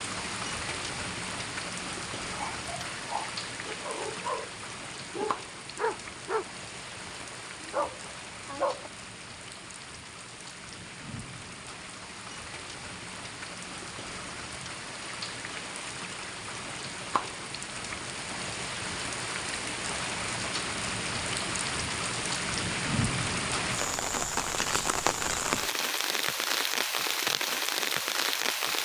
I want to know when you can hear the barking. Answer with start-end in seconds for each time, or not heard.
2.3-4.5, 5.1-8.9.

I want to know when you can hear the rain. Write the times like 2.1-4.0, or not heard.
0.0-28.8.